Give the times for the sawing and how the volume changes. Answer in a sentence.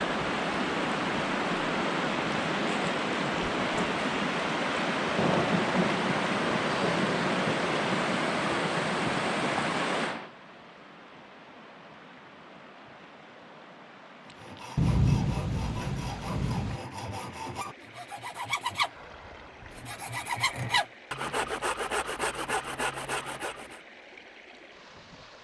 You can hear the sawing from 14.2 to 23.8 s, getting louder.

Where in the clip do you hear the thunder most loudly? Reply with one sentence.
The volume of the thunder peaks at 15 seconds.